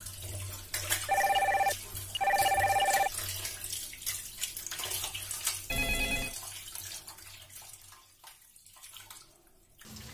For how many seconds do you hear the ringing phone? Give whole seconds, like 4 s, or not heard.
3 s.